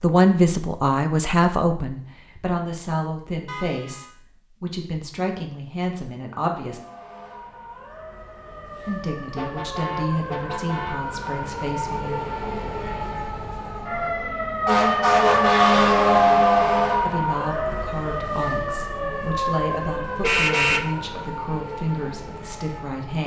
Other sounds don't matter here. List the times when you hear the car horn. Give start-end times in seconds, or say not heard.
3.5-4.1, 9.3-11.2, 20.2-20.9.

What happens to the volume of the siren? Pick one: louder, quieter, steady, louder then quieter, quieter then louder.
louder then quieter.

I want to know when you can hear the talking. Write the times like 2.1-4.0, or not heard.
0.0-6.8, 8.8-12.2, 17.0-23.2.